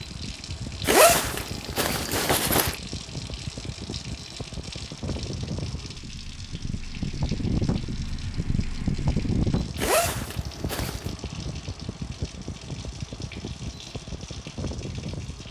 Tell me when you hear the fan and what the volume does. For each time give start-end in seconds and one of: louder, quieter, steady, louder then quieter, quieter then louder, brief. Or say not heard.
0.0-15.4 louder then quieter.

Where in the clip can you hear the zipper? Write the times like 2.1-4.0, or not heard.
0.8-2.8, 9.8-11.1.